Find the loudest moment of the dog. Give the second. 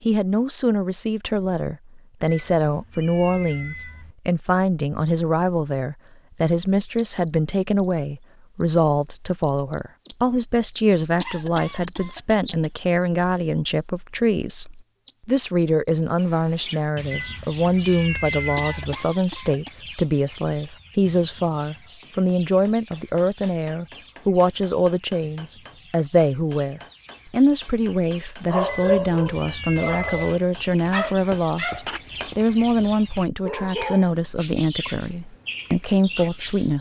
29 s.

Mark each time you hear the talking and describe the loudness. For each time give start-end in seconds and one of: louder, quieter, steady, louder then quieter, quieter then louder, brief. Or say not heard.
0.0-36.7 steady.